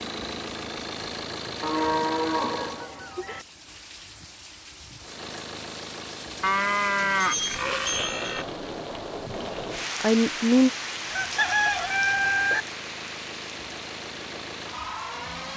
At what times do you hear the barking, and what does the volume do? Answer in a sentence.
You can't hear the barking here.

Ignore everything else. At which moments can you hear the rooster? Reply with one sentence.
The rooster can be heard from 11.1 to 12.7 s.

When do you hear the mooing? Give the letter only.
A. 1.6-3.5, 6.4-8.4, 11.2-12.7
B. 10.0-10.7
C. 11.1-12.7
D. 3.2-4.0
A.